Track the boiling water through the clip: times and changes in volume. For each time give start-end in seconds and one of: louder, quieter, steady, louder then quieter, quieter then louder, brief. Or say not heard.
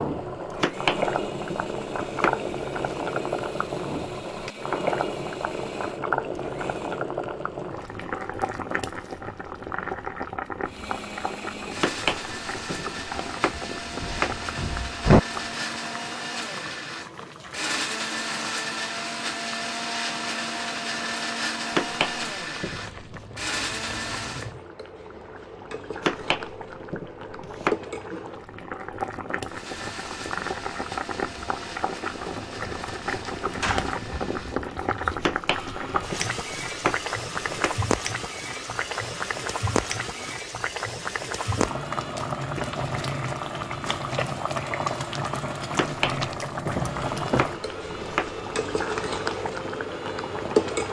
0.0-50.8 quieter then louder.